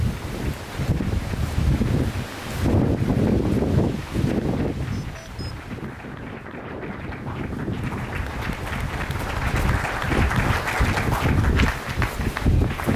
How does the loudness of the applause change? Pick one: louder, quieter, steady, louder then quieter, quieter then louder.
louder.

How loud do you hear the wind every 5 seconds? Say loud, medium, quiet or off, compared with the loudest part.
loud, medium, loud.